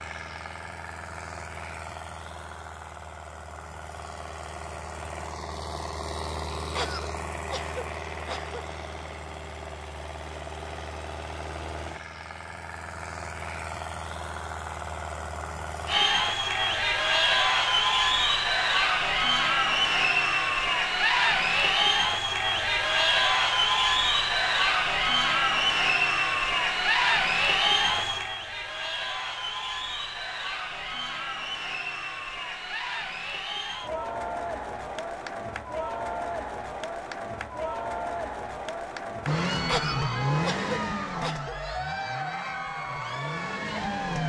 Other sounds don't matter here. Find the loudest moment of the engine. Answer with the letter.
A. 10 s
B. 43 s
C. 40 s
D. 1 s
C.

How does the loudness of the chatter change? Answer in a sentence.
The loudness of the chatter goes down.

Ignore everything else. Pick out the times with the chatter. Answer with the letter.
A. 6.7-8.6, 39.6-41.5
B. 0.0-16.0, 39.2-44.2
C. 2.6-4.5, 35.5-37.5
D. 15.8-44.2
D.